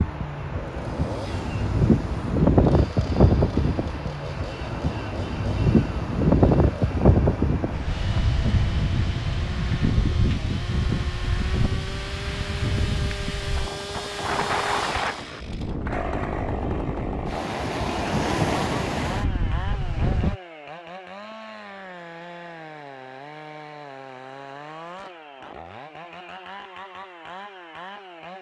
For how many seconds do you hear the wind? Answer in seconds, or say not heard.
20 s.